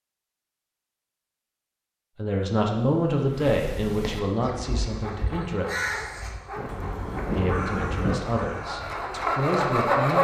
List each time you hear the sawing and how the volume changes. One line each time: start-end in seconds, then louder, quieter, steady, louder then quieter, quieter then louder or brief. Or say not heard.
4.3-10.1 louder.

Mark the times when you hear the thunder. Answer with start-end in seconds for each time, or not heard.
6.5-8.2.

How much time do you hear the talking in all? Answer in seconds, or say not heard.
6 s.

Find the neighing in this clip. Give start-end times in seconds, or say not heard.
not heard.